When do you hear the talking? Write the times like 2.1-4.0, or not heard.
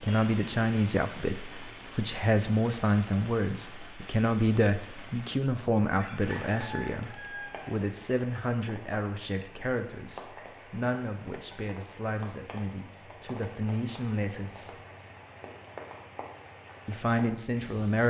0.0-14.8, 16.9-18.0.